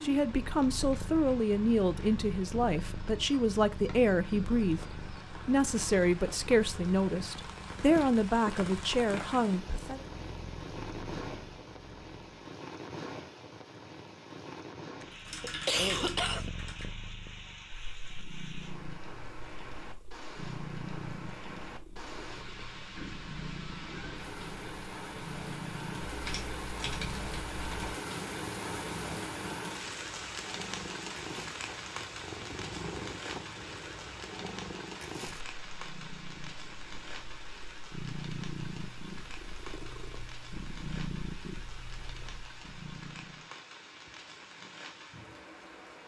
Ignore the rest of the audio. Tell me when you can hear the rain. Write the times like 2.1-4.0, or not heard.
0.0-46.0.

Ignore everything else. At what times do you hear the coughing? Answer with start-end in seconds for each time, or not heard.
15.0-16.5.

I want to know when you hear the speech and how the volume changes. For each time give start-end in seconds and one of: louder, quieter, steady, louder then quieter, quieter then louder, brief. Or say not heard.
0.0-10.1 steady.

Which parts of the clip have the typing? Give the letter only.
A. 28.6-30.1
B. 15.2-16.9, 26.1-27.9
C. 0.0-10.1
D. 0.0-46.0
B.